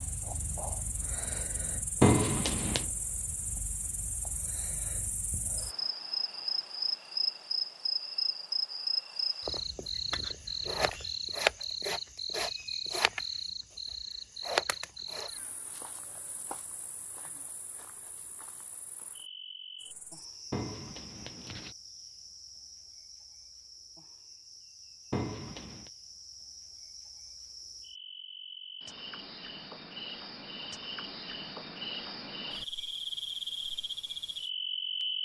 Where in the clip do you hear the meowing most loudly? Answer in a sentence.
The volume of the meowing peaks at 2 seconds.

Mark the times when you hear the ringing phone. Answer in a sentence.
You can't hear the ringing phone here.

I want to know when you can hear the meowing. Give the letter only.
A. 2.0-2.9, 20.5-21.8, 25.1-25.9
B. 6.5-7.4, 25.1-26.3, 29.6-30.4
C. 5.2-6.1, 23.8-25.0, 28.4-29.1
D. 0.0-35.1
A.